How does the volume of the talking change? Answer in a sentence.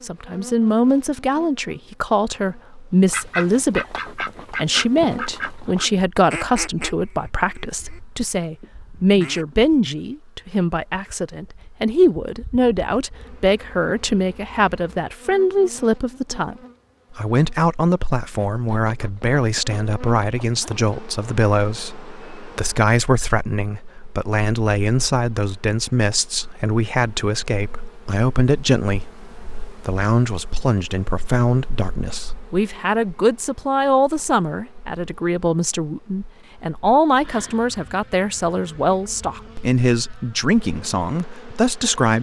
The volume of the talking stays about the same.